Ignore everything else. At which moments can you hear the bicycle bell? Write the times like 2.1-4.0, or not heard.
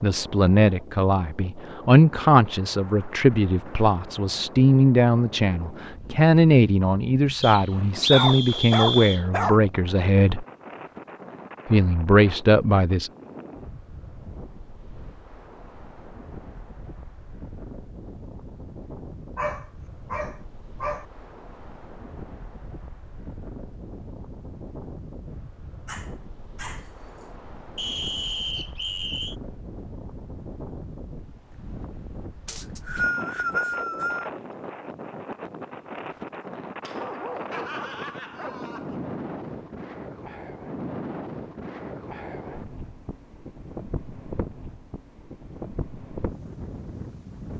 not heard.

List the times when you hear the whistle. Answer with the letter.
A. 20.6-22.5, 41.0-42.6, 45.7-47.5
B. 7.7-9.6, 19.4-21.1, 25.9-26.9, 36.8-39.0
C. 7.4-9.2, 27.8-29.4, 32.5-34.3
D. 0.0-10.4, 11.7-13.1
C.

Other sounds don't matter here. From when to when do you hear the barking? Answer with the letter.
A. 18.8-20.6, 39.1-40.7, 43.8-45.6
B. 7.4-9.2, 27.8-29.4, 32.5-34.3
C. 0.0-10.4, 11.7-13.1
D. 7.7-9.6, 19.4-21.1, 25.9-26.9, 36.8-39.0
D.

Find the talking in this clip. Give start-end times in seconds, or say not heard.
0.0-10.4, 11.7-13.1.